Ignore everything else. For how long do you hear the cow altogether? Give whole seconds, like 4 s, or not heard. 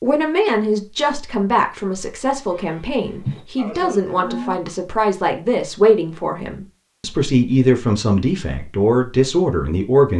2 s.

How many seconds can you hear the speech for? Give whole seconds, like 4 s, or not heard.
10 s.